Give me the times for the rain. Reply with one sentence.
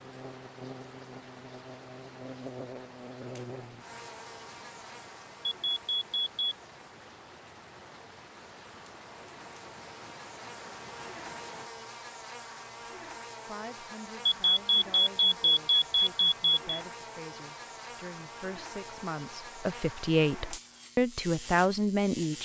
You can hear the rain from 0.0 to 11.7 s.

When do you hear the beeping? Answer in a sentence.
You can hear the beeping from 5.5 to 6.5 s and from 14.2 to 16.8 s.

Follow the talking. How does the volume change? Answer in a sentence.
The loudness of the talking goes up.